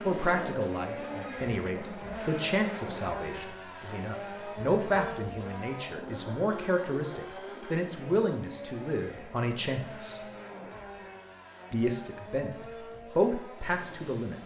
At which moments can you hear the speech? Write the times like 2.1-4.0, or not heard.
0.1-10.2, 11.7-12.6, 13.2-14.3.